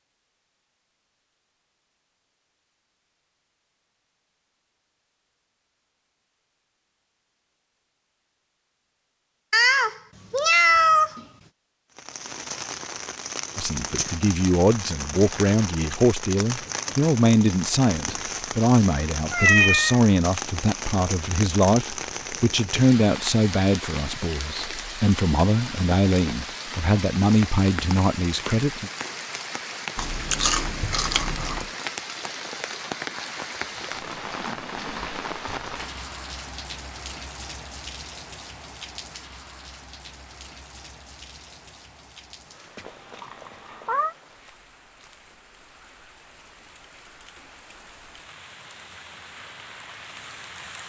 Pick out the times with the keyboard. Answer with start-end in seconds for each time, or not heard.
not heard.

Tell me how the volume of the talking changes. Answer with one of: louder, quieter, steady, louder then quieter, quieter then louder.
steady.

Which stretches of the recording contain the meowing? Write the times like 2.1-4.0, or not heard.
9.5-11.2, 19.3-20.0, 42.9-44.1.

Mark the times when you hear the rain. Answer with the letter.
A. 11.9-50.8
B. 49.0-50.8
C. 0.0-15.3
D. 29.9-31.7
A.